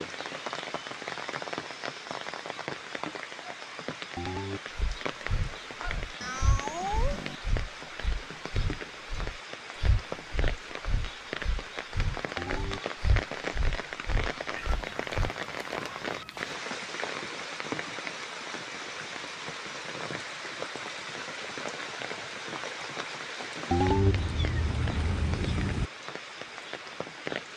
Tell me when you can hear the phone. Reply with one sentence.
You can hear the phone from 4.2 to 4.6 s, from 12.3 to 12.8 s and from 23.7 to 24.1 s.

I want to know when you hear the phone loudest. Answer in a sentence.
The volume of the phone peaks at 24 seconds.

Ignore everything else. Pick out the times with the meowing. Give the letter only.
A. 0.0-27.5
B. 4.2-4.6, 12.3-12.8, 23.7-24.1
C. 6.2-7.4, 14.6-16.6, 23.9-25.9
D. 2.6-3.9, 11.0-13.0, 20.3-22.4
C.